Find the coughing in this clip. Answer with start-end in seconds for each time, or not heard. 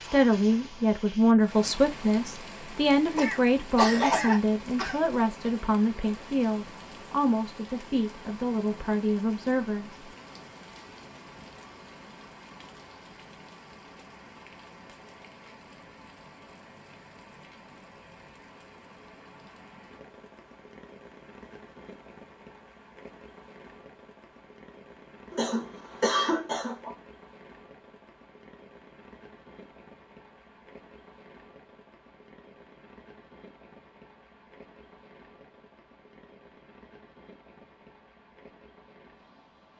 3.1-5.0, 25.3-26.9.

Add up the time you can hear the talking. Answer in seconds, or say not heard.
10 s.